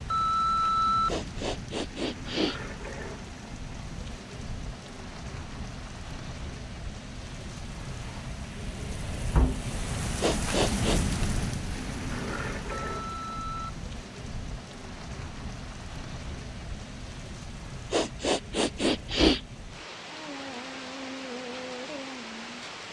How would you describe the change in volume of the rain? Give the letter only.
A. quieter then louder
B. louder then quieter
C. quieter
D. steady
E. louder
B.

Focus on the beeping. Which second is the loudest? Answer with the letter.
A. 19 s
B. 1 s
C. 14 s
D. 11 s
B.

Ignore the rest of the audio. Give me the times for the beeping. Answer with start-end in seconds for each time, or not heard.
0.1-1.1, 12.7-13.8.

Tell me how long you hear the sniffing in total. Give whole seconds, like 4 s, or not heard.
4 s.